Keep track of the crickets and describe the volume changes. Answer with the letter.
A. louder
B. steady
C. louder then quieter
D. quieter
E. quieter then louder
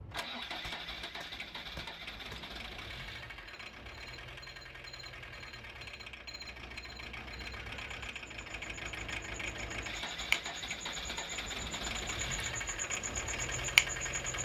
A.